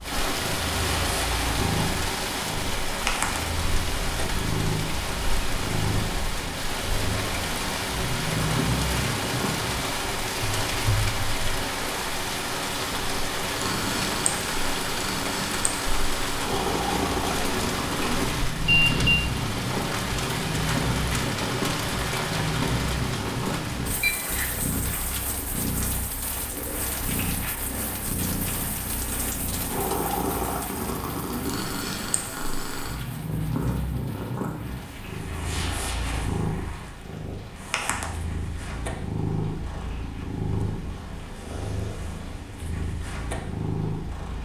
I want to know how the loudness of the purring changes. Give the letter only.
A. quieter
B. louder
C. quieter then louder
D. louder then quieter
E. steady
E.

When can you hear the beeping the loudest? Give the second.
19 s.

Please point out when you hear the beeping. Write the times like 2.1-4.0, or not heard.
18.6-19.2, 24.0-24.8.